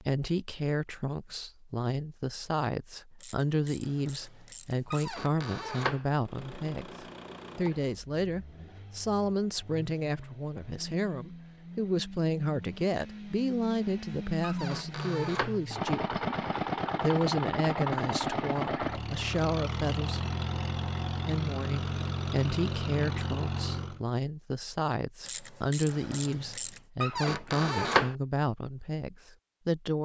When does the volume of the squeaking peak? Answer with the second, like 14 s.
28 s.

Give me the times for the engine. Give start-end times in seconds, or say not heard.
6.2-24.0.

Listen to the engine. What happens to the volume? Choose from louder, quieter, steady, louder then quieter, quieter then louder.
louder.